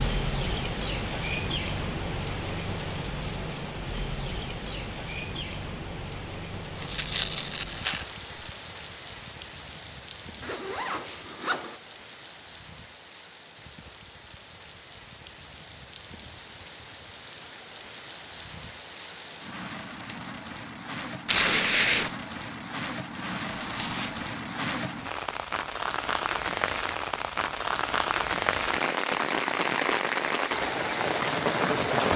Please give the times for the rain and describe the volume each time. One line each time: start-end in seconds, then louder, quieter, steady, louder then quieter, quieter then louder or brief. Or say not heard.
0.0-32.1 quieter then louder.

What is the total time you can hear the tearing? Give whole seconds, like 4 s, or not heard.
2 s.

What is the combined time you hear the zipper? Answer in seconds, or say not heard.
2 s.